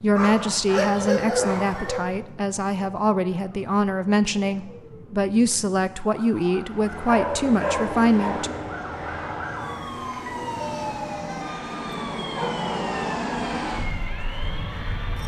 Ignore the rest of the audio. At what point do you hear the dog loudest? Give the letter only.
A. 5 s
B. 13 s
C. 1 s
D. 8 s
C.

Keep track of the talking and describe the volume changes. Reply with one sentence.
The volume of the talking stays about the same.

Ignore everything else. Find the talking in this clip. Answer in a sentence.
The talking can be heard from 0.0 to 8.6 s.